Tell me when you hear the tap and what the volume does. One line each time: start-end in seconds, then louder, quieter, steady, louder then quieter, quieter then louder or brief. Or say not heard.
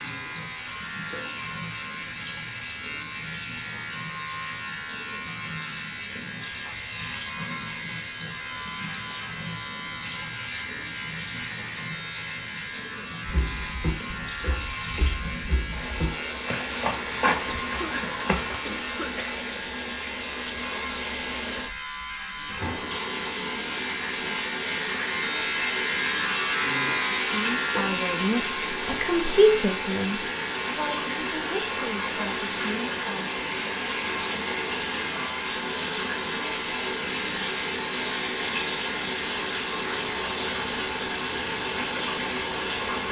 0.0-43.0 louder.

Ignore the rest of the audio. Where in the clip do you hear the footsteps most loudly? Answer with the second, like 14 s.
17 s.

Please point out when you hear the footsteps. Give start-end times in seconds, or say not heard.
13.2-18.6.